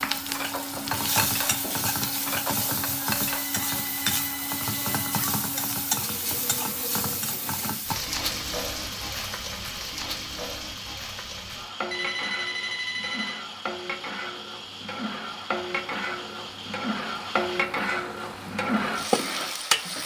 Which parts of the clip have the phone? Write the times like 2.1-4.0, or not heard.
3.2-5.3, 11.9-13.4.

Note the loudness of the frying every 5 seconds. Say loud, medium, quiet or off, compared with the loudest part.
loud, loud, medium, loud.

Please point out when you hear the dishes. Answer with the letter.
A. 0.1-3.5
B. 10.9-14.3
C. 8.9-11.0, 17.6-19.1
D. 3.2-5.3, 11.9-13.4
A.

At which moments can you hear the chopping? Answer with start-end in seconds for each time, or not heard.
not heard.